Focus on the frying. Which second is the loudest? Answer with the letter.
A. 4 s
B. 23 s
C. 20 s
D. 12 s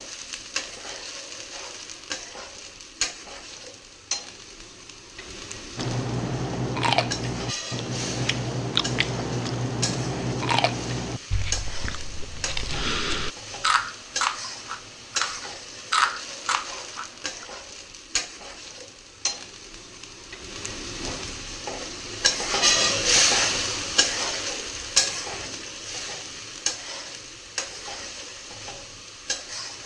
B.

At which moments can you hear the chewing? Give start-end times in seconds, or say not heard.
5.8-17.4.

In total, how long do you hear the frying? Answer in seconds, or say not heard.
30 s.